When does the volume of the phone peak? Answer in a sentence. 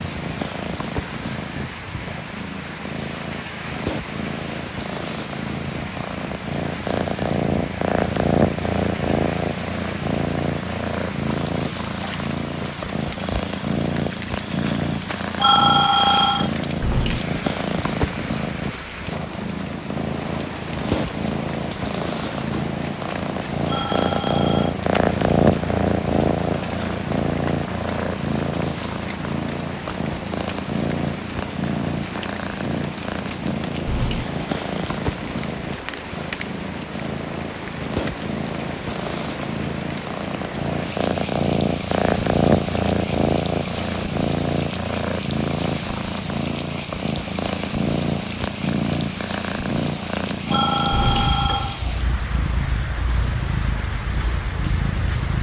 The loudest moment of the phone is at 16 seconds.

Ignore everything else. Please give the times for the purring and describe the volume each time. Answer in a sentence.
You can hear the purring from 0.0 to 55.3 s, at a steady volume.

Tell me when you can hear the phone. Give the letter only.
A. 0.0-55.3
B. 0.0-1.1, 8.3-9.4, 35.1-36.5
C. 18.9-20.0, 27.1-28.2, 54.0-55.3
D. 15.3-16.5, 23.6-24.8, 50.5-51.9
D.